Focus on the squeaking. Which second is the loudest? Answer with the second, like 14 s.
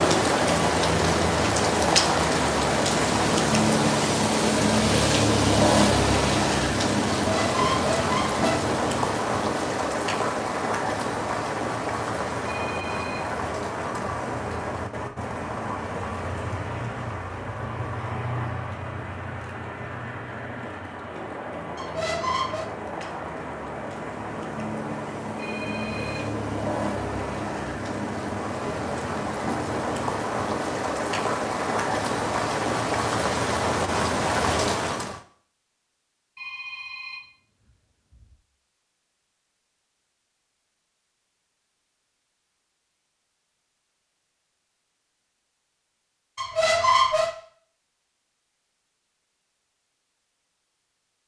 47 s.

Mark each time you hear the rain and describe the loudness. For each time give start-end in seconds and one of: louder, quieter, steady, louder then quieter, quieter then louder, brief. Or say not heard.
0.0-35.2 quieter then louder.